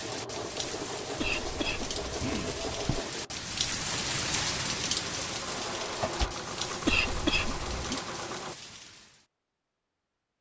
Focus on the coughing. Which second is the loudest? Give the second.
7 s.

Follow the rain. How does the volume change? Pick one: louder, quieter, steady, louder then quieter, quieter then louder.
louder then quieter.